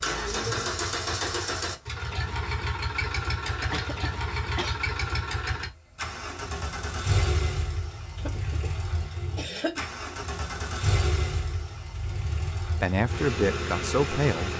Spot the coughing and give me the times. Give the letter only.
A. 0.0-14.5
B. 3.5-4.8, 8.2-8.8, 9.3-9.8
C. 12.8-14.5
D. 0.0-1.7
B.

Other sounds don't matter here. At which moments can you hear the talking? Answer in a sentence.
You can hear the talking from 12.8 to 14.5 s.